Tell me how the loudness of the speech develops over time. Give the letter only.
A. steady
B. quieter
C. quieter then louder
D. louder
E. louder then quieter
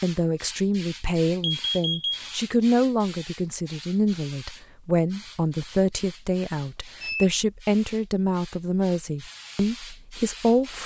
A.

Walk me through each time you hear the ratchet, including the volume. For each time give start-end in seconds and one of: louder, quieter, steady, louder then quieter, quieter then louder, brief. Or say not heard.
not heard.